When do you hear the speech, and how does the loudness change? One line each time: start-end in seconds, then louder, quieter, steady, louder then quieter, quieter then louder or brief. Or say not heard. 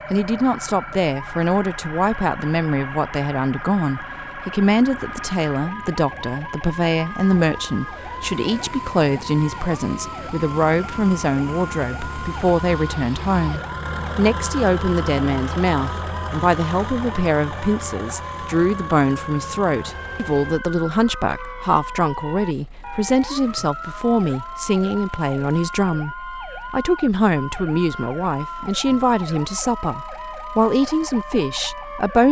0.1-32.2 steady.